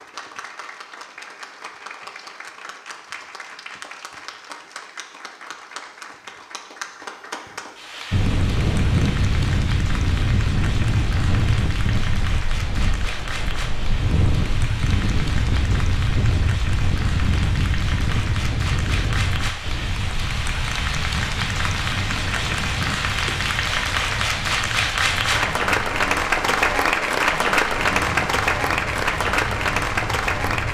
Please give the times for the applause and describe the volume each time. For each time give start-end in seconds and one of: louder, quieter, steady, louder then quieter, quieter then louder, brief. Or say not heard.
0.0-30.6 louder.